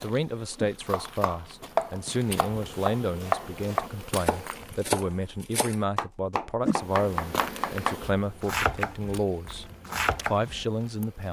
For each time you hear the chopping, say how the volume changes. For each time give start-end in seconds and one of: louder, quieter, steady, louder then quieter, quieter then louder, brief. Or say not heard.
0.8-10.7 steady.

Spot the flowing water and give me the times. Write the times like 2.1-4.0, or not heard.
not heard.